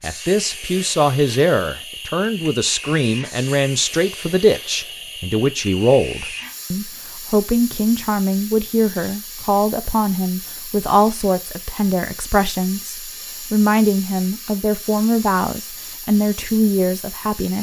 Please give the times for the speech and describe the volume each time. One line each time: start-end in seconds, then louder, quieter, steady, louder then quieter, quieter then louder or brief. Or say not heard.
0.0-17.5 steady.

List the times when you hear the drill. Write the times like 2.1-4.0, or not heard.
not heard.